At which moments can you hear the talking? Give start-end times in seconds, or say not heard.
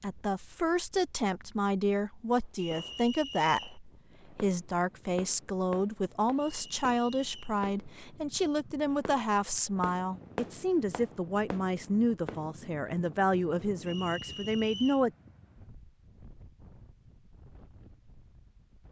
0.0-15.1.